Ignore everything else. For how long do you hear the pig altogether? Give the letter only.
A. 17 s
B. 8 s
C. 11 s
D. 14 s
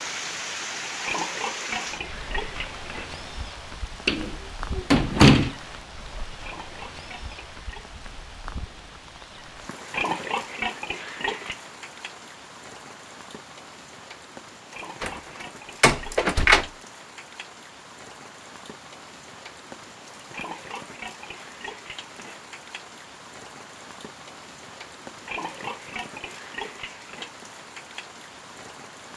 C.